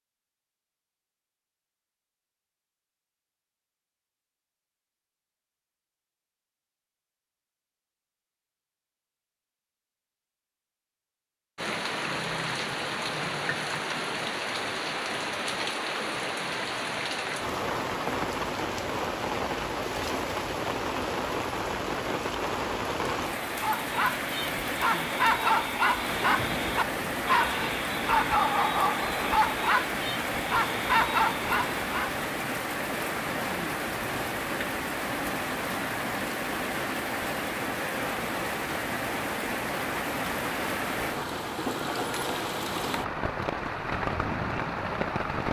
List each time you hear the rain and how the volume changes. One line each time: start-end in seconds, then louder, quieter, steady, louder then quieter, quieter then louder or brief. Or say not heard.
11.6-45.4 steady.